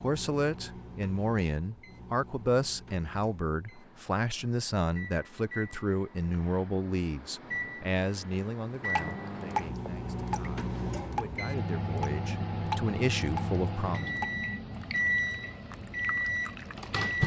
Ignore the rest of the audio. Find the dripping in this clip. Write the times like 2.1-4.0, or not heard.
8.8-17.2.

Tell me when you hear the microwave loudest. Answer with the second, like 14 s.
15 s.